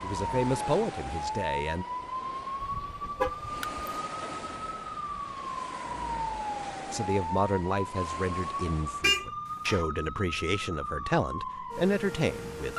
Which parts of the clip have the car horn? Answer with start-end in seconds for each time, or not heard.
2.6-3.9, 9.0-9.8.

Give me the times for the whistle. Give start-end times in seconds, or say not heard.
not heard.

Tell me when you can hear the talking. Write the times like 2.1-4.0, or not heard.
0.0-1.9, 6.9-12.7.